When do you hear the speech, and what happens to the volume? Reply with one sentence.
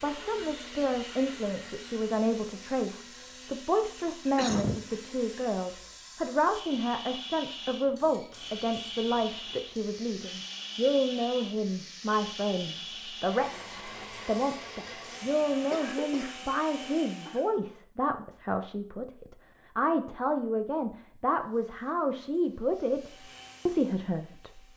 The speech can be heard from 0.0 to 24.7 s, at a steady volume.